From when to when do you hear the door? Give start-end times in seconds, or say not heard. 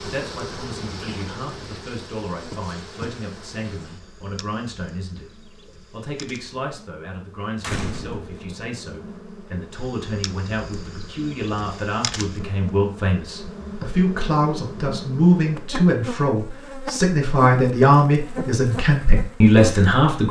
7.6-8.4.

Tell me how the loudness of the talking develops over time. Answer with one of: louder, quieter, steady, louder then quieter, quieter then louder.
louder.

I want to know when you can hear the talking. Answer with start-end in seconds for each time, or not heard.
0.0-20.2.